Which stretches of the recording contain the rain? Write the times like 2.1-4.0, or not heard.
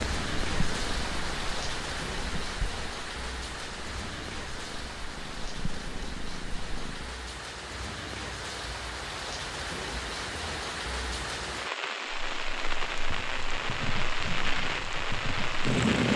0.0-16.1.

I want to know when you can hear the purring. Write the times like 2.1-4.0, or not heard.
0.0-7.2, 12.1-16.1.